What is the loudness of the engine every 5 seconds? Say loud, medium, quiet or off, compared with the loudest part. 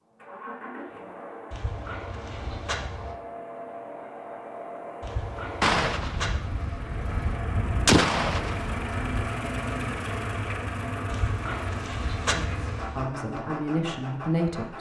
medium, loud, loud.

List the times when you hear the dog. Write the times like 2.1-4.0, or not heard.
1.5-3.1, 5.0-7.3, 11.1-13.1.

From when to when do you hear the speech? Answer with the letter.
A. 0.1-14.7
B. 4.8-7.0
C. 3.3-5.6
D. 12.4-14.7
D.